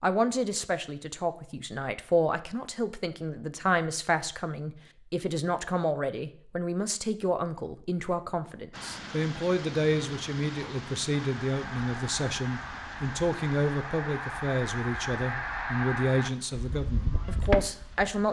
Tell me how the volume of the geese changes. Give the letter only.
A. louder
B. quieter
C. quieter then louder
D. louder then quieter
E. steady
A.